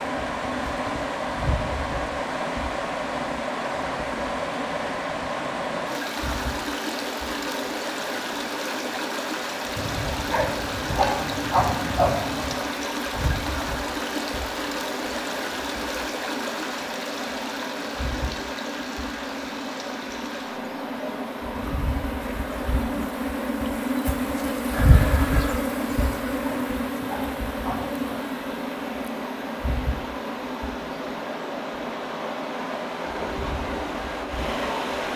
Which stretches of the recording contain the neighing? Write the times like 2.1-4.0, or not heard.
24.7-25.6.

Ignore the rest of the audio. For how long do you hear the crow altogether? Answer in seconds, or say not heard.
not heard.